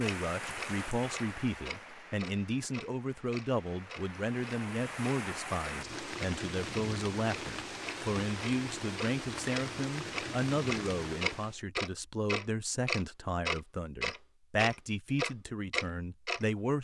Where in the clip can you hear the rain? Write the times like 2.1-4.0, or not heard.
0.0-11.6.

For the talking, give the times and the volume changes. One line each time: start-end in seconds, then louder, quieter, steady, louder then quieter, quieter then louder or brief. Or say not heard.
0.0-16.7 steady.